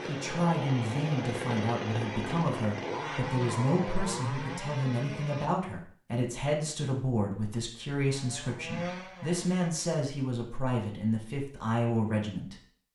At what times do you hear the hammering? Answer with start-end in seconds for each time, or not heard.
not heard.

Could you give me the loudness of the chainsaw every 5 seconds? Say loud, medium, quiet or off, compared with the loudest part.
loud, medium, off.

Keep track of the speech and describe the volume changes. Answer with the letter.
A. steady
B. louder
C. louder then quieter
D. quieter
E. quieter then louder
A.